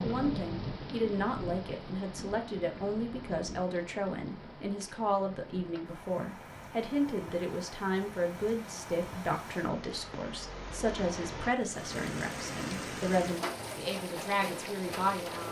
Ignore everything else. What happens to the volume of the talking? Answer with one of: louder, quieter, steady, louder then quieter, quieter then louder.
steady.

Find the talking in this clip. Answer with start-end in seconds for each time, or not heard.
0.0-15.4.